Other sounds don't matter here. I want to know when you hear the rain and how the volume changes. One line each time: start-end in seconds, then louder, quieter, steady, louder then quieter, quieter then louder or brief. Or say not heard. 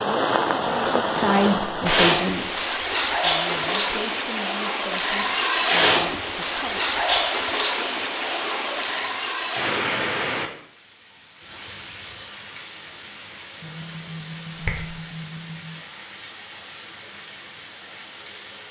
0.0-18.6 quieter.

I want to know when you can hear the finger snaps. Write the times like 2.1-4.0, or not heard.
13.6-15.7.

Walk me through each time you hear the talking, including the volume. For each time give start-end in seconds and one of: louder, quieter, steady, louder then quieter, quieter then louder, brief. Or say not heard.
0.0-6.8 quieter.